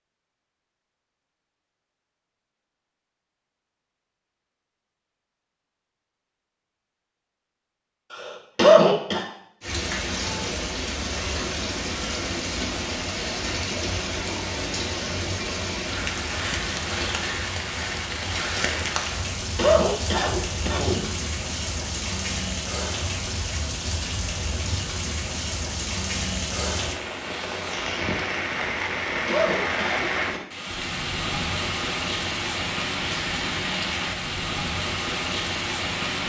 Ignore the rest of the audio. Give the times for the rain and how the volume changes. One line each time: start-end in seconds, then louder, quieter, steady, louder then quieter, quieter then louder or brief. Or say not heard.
9.6-36.2 steady.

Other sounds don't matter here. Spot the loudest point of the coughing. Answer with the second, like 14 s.
9 s.